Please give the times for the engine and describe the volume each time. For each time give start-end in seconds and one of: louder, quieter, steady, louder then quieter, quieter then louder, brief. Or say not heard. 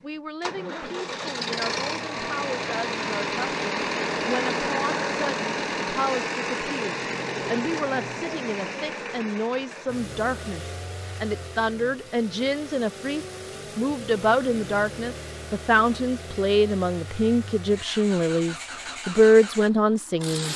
0.0-20.5 quieter.